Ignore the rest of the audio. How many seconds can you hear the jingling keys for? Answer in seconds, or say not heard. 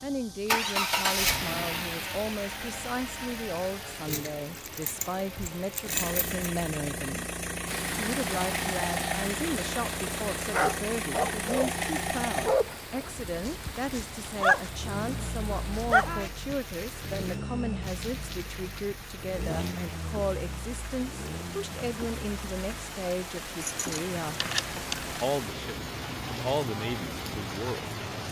4 s.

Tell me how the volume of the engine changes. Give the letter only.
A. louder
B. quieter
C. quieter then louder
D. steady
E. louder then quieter
B.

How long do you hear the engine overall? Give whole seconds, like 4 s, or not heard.
28 s.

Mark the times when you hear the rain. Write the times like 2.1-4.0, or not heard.
7.7-28.2.